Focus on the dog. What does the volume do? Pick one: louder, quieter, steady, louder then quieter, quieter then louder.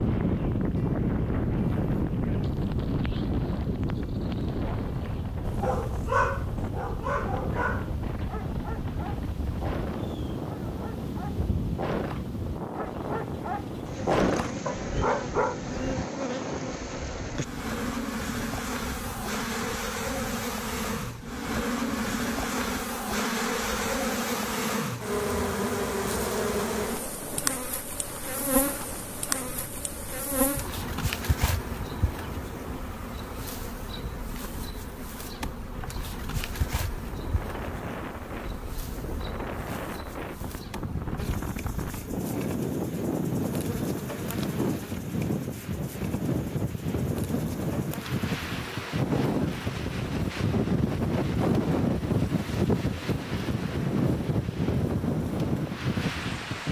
quieter then louder.